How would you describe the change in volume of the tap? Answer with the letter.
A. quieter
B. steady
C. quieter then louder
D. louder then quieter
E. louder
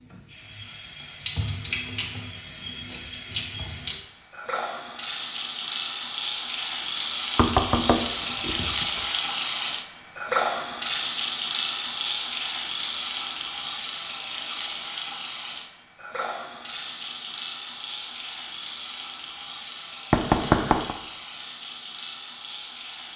D.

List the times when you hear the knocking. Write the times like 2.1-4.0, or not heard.
7.3-9.1, 20.1-20.9.